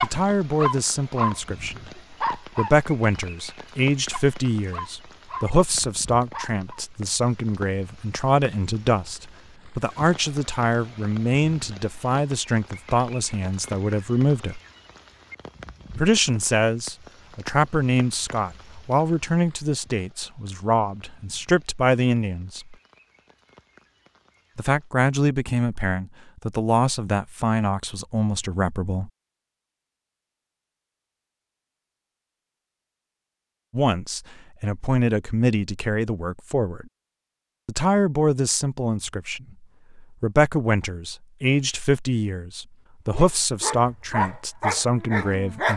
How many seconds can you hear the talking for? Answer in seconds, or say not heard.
37 s.